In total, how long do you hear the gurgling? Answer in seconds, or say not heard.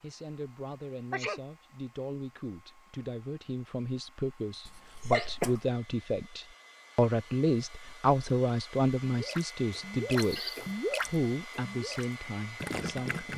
4 s.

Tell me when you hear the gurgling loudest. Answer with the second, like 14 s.
11 s.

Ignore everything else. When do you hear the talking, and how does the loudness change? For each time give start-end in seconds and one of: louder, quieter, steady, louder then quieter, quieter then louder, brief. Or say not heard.
0.0-10.4 louder
11.1-13.3 brief.